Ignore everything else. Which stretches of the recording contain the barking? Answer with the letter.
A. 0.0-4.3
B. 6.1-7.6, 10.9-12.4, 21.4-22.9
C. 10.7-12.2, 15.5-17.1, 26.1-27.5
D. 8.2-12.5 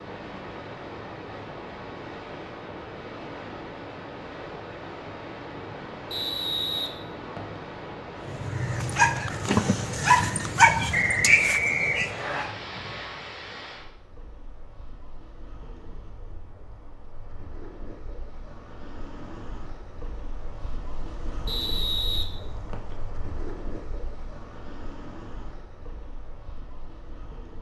D.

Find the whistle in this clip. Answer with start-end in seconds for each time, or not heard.
6.1-7.6, 10.9-12.4, 21.4-22.9.